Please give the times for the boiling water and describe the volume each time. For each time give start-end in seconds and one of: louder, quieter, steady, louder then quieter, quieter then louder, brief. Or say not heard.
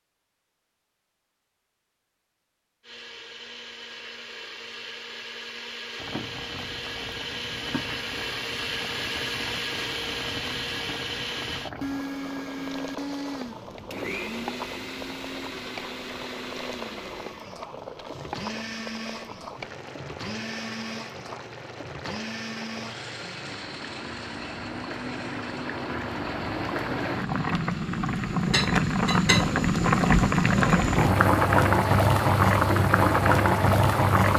6.0-34.3 louder.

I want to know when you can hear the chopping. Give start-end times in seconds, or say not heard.
not heard.